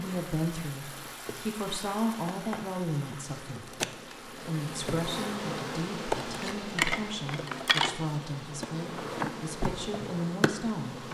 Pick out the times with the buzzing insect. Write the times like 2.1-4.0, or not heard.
0.0-11.0.